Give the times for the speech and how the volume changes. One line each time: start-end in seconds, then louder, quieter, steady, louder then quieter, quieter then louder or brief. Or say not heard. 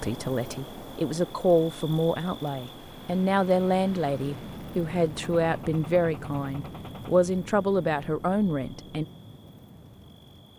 0.0-9.1 steady.